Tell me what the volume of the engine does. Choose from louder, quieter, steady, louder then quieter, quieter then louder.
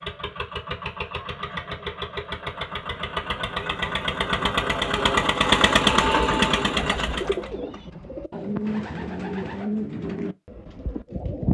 louder.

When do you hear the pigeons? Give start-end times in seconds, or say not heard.
6.0-11.5.